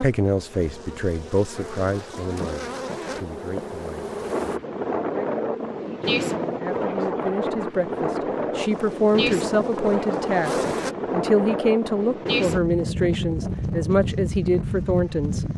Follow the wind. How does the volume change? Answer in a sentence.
The loudness of the wind stays about the same.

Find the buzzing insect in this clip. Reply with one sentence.
You can hear the buzzing insect from 0.0 to 4.6 s and from 8.6 to 10.9 s.